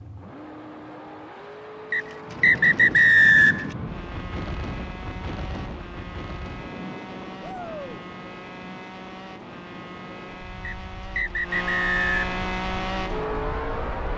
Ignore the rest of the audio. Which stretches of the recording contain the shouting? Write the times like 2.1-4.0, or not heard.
7.4-8.0.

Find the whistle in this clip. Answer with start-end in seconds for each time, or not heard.
1.9-3.6, 10.6-12.3.